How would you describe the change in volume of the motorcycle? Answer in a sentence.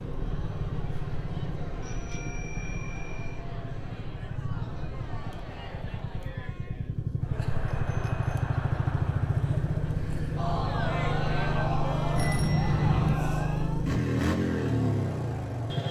The loudness of the motorcycle goes up.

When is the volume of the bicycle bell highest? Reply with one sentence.
The loudest moment of the bicycle bell is at 13 seconds.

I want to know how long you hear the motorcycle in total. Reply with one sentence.
The motorcycle can be heard for 16 seconds in total.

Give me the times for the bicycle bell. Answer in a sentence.
You can hear the bicycle bell from 1.8 to 3.5 s, from 7.7 to 8.4 s and from 12.2 to 13.2 s.